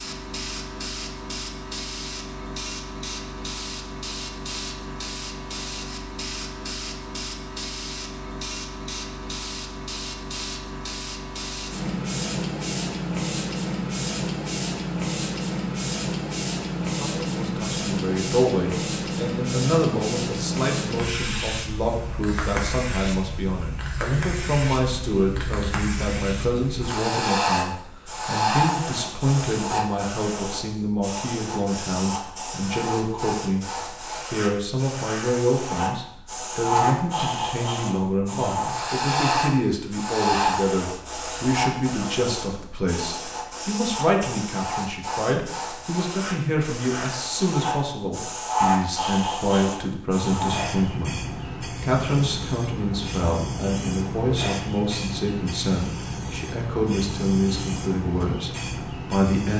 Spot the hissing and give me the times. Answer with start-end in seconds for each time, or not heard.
0.0-59.5.